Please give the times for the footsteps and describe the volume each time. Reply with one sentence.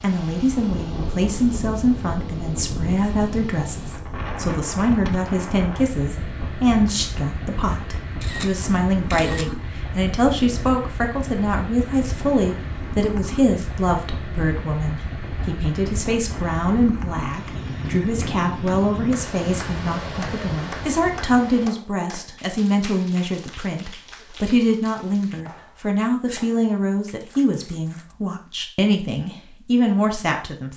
The footsteps can't be heard in this clip.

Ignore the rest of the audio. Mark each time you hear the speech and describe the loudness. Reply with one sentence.
The speech can be heard from 0.0 to 30.7 s, at a steady volume.